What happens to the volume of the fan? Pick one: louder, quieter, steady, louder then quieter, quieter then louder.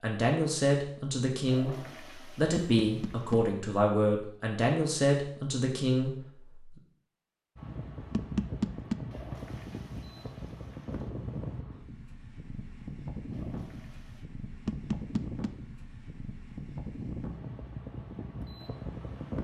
steady.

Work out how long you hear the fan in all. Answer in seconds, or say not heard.
12 s.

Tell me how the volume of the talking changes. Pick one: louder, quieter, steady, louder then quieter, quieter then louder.
steady.